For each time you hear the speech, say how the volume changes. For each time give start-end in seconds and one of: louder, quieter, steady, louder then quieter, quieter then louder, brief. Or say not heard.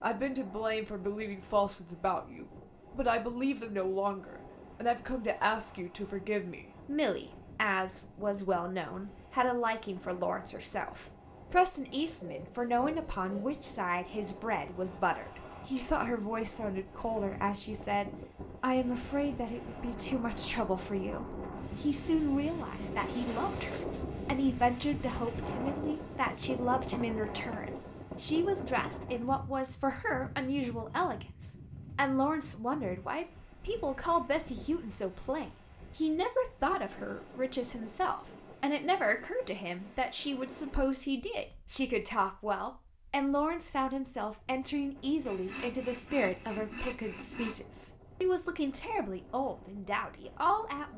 0.0-50.9 steady.